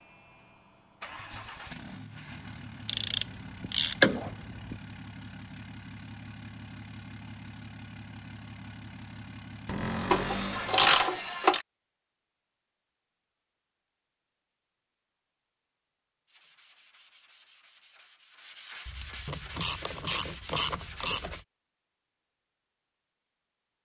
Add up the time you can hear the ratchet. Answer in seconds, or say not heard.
6 s.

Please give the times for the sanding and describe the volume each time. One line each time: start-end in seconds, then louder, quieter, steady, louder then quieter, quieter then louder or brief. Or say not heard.
16.2-21.4 louder.